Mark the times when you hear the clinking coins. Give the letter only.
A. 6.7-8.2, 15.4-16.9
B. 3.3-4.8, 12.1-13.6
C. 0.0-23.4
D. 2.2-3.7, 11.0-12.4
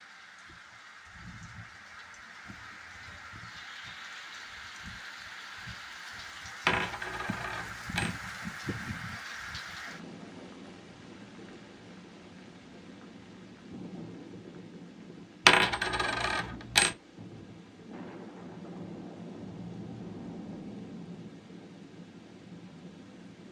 A.